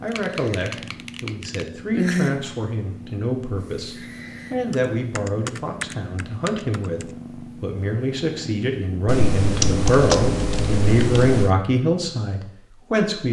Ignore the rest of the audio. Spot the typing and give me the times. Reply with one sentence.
You can hear the typing from 0.1 to 1.6 s, from 4.7 to 7.0 s and from 9.1 to 11.6 s.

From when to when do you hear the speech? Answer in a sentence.
The speech can be heard from 0.0 to 13.2 s.